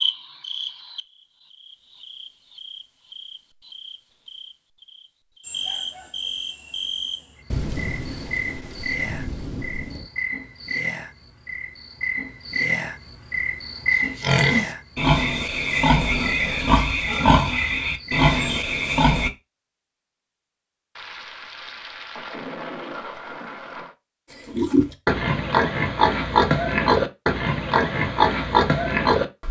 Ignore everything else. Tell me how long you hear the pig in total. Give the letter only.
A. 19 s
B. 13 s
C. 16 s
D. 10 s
D.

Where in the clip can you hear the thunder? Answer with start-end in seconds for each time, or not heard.
7.5-10.1, 20.9-23.9.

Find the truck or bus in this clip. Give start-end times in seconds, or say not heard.
not heard.